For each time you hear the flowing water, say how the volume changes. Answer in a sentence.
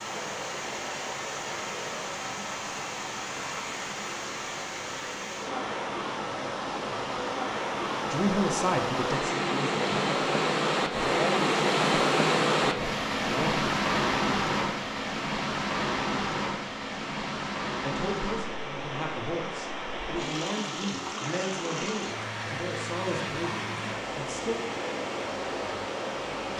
You can hear the flowing water from 0.0 to 26.5 s, getting louder then quieter.